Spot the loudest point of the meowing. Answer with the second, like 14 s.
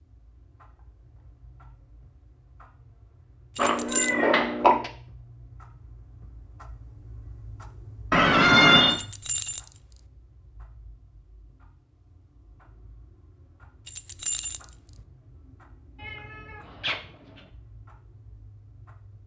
9 s.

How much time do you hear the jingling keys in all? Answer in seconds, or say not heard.
3 s.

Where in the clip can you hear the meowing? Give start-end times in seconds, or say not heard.
3.5-4.9, 8.1-9.0, 16.0-17.4.